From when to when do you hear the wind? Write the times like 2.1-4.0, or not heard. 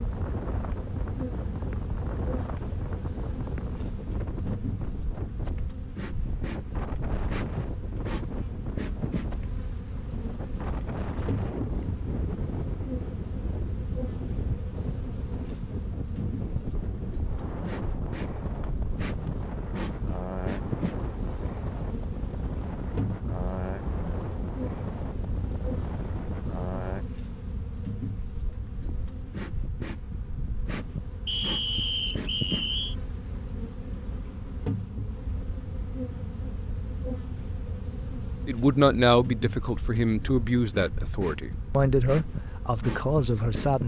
0.0-27.1.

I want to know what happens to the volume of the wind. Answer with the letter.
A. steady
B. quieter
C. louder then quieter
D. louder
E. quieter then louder
A.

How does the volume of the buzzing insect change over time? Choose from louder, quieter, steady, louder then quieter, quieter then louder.
steady.